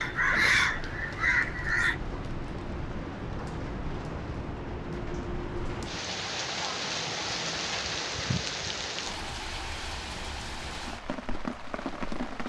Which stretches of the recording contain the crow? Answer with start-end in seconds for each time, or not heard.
0.0-1.9.